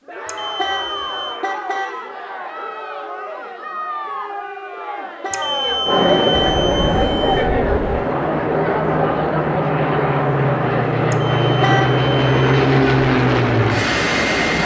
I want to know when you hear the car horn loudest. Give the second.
12 s.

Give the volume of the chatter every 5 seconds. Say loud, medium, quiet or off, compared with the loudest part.
medium, loud, medium.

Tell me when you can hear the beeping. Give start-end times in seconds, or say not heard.
0.2-1.4, 5.3-7.5, 11.1-12.6.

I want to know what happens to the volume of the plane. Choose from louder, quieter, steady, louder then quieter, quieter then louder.
louder.